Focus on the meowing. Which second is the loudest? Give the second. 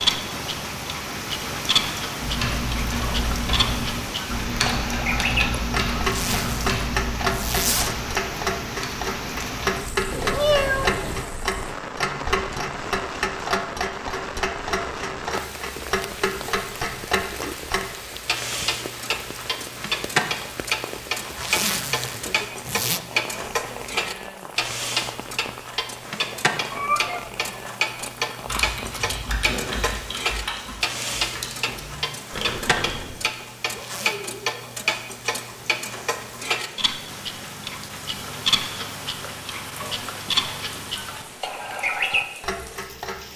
11 s.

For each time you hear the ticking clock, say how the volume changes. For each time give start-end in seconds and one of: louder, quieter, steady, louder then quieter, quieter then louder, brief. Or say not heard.
0.0-43.3 steady.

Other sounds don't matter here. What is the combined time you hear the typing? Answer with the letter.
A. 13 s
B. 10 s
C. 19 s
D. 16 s
A.